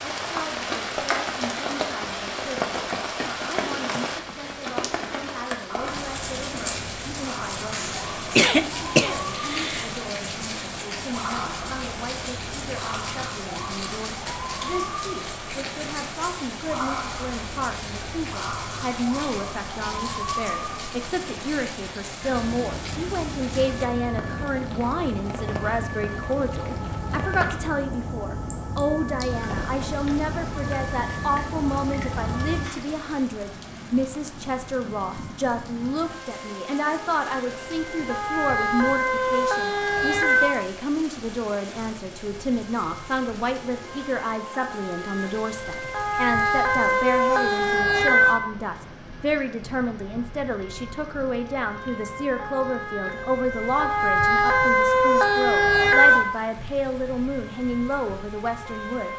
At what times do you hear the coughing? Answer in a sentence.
You can hear the coughing from 7.7 to 9.9 s.